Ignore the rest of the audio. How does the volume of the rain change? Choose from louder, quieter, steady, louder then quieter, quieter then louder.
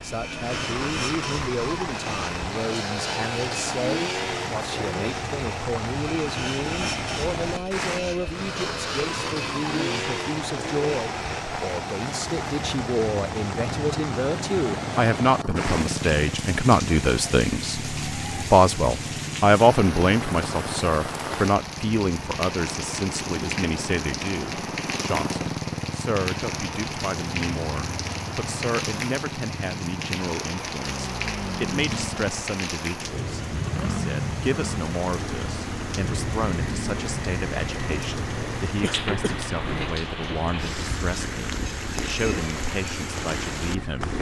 steady.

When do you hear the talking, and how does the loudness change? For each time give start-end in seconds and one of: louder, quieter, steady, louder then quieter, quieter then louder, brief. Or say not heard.
0.0-44.1 louder then quieter.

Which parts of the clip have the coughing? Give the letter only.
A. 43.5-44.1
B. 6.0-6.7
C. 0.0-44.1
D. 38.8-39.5
D.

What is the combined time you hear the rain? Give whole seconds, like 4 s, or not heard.
44 s.